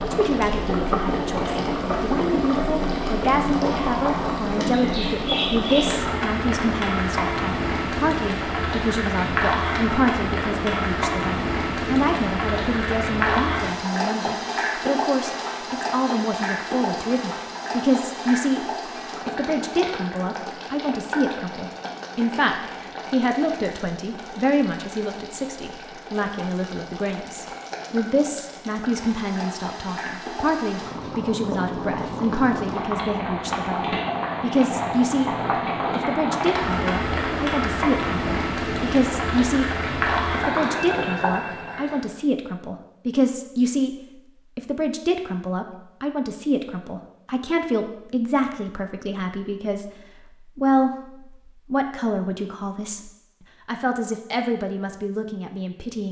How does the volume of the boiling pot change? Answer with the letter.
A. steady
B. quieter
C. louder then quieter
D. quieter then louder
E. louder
D.